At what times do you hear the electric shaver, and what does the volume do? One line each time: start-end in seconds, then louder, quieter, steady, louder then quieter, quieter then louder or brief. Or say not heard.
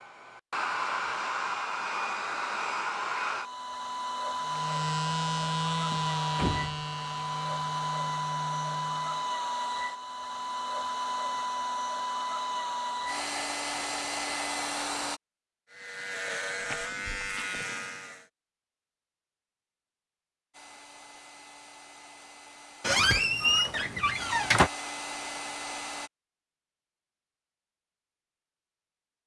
4.4-9.3 quieter
15.7-18.2 brief.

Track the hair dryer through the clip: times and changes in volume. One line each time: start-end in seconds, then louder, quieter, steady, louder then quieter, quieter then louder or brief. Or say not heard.
0.0-15.2 steady
20.5-26.1 louder.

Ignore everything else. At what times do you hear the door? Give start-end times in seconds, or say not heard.
5.9-6.8, 16.6-17.4, 22.8-24.7.